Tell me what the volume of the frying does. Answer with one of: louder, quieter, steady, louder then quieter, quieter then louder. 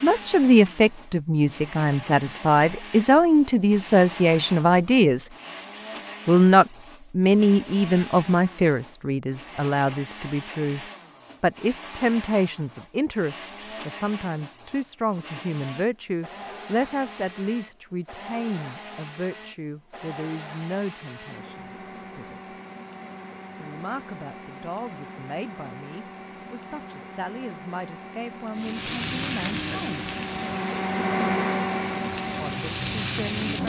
quieter then louder.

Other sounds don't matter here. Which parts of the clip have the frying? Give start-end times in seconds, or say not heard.
28.6-33.6.